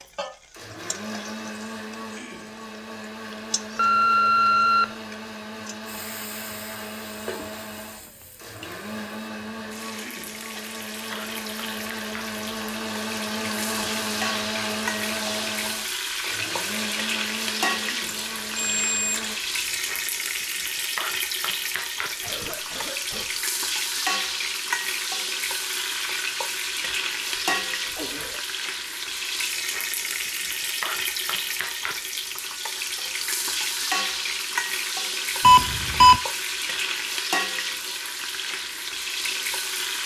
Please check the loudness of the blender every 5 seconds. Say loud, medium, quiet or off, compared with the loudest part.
medium, medium, loud, loud, off, off, off, off.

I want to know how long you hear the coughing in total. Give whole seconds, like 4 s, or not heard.
4 s.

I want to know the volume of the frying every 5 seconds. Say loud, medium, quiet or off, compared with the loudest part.
quiet, quiet, medium, loud, loud, loud, loud, loud.